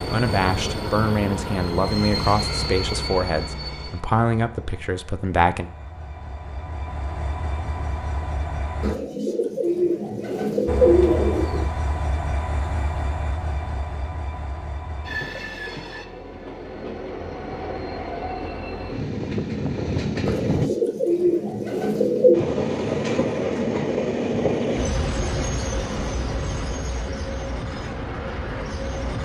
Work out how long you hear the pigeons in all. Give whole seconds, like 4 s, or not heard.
5 s.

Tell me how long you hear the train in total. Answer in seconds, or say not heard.
26 s.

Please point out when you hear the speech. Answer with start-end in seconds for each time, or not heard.
0.1-5.7.